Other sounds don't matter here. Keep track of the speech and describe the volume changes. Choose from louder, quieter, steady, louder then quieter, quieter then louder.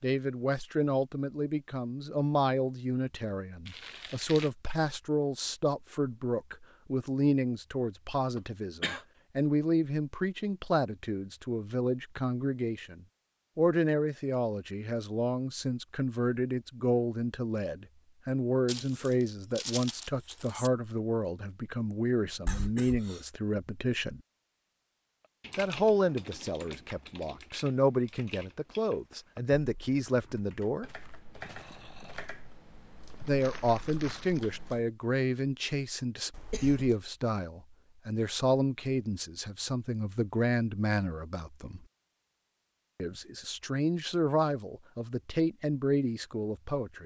steady.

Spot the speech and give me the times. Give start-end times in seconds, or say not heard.
0.0-24.2, 25.6-30.9, 33.2-41.9, 43.0-47.0.